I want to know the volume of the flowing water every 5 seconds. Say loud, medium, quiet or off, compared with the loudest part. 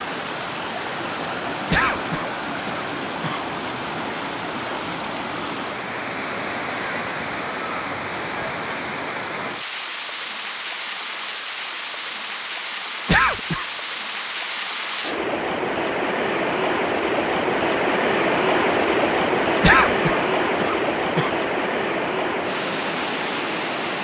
medium, medium, medium, loud, loud.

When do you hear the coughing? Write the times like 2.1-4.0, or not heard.
1.7-3.4, 13.1-13.7, 19.6-21.3.